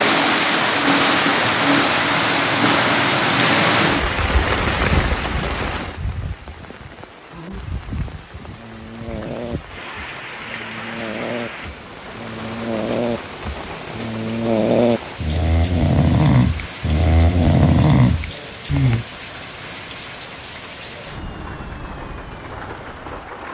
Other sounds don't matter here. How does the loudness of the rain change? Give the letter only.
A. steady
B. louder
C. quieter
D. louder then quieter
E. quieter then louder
C.